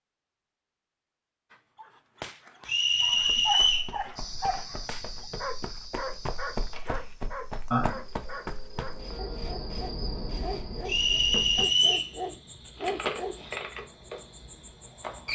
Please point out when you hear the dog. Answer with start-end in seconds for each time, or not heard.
1.5-13.4.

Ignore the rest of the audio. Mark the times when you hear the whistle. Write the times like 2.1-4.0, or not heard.
2.6-3.9, 10.8-12.1.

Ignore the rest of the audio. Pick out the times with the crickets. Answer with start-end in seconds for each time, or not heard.
4.2-15.2.